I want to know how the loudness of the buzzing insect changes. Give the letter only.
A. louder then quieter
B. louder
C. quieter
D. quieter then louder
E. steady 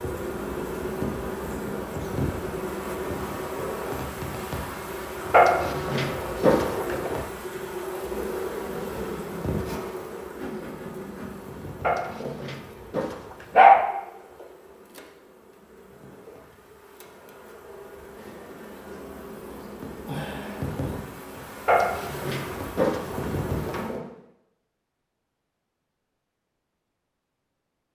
D.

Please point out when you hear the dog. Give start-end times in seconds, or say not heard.
5.3-7.1, 11.8-13.8, 21.6-23.2.